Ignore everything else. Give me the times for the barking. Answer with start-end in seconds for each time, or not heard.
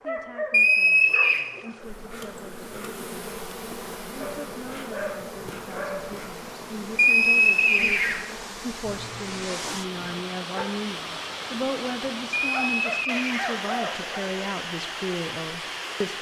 0.1-1.5, 4.2-6.2, 8.8-10.7, 12.5-14.3.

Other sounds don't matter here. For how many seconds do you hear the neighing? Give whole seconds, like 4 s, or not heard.
3 s.